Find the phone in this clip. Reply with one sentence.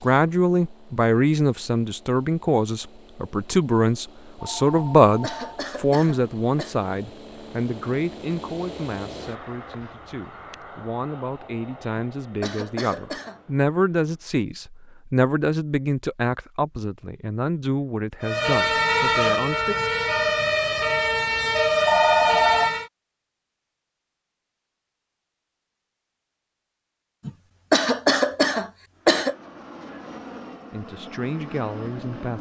The phone can be heard from 4.3 to 5.6 s and from 21.9 to 22.7 s.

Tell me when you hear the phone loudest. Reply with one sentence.
The volume of the phone peaks at 22 seconds.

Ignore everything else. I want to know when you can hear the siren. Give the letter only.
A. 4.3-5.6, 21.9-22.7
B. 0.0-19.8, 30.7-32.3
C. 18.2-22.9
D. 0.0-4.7
C.